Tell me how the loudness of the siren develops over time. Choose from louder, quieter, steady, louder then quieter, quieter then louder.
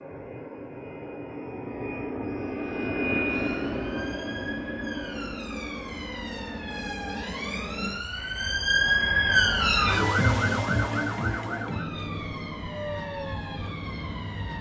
louder then quieter.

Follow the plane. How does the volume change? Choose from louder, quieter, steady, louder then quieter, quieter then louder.
quieter.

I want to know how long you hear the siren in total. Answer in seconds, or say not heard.
11 s.